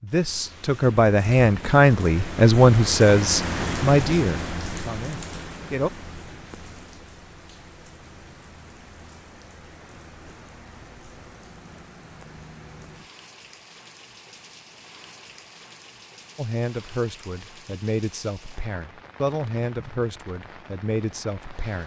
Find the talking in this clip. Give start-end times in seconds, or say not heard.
0.0-5.9, 16.4-21.8.